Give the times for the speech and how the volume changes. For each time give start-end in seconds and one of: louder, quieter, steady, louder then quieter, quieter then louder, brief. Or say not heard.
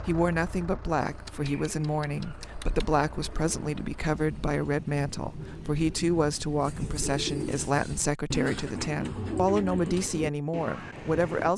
0.1-11.5 steady.